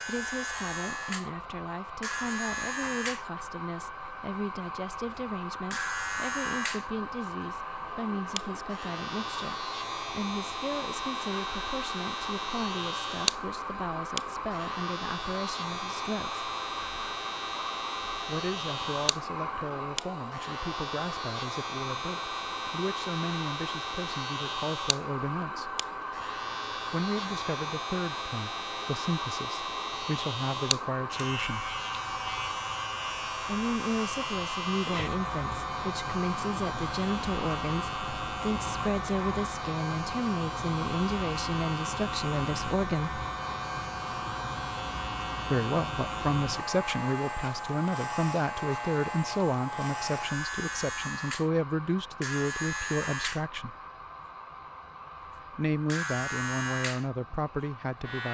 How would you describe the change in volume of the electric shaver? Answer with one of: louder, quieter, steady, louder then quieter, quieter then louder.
steady.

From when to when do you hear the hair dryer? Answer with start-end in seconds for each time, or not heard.
0.0-58.2.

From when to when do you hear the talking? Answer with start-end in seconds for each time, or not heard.
0.1-16.4, 18.2-25.8, 26.9-31.6, 33.5-43.2, 45.5-53.8, 55.5-58.2.